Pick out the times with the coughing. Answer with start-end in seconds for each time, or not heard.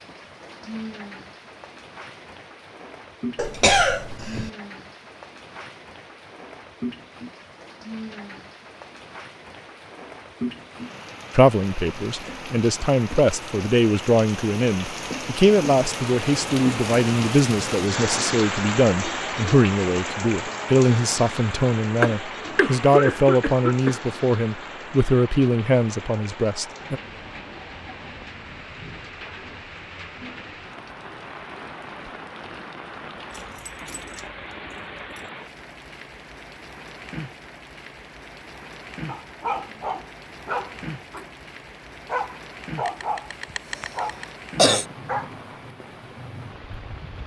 3.4-4.5, 22.0-24.0, 42.9-44.9.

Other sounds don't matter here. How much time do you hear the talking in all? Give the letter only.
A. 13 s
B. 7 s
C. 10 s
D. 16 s
D.